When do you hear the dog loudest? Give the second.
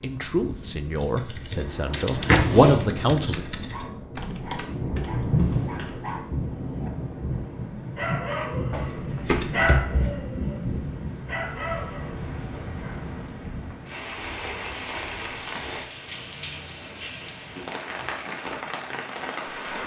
10 s.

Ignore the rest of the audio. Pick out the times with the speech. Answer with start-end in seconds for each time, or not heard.
0.0-3.4.